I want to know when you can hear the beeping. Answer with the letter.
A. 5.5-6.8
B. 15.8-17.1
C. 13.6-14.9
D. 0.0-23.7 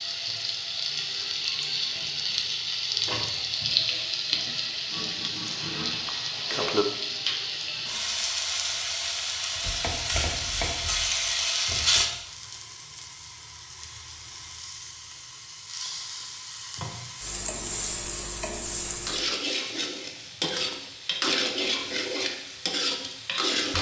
A.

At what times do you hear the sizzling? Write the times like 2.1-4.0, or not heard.
0.0-23.7.